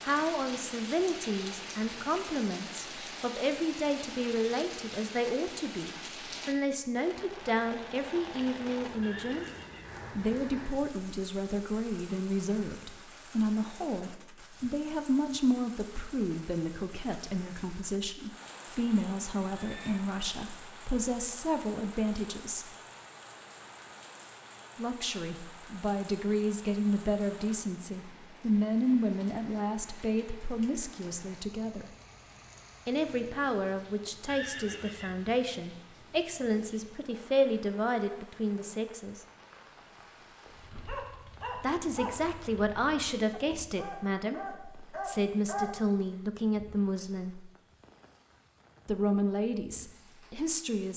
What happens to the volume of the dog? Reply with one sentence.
The volume of the dog goes down, then up.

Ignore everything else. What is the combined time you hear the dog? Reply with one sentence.
The dog can be heard for 5 seconds in total.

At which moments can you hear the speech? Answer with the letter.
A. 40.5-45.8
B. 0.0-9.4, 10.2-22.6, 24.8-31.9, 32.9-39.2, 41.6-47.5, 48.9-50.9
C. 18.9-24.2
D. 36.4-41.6
B.